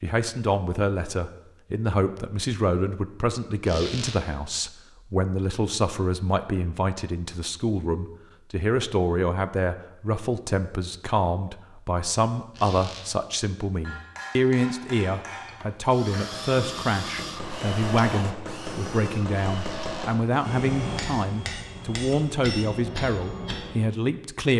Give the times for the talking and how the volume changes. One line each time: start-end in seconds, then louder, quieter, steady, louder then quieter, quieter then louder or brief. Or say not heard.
0.0-24.5 steady.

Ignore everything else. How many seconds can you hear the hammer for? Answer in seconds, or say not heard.
10 s.